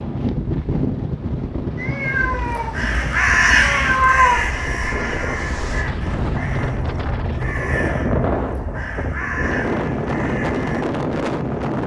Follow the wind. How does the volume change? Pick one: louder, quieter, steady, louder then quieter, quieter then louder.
quieter then louder.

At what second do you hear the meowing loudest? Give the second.
4 s.